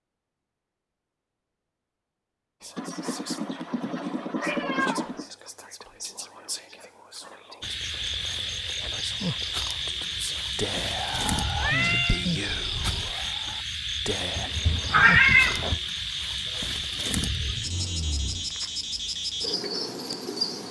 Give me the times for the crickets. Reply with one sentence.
The crickets can be heard from 7.6 to 20.6 s.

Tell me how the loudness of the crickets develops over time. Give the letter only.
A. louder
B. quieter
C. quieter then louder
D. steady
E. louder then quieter
D.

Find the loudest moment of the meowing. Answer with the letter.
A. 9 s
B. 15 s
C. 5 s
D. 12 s
B.